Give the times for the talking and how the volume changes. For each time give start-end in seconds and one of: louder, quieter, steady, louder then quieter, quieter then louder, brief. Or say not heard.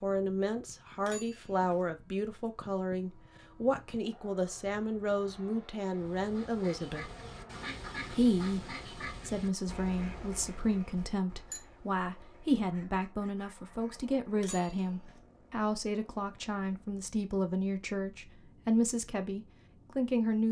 0.0-7.1 steady
8.1-20.4 steady.